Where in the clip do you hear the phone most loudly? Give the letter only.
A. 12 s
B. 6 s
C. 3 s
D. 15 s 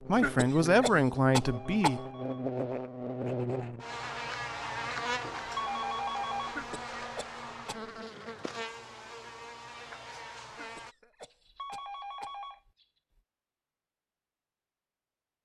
B.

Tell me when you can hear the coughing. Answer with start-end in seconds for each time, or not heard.
0.1-2.1, 6.5-7.9, 10.5-12.4.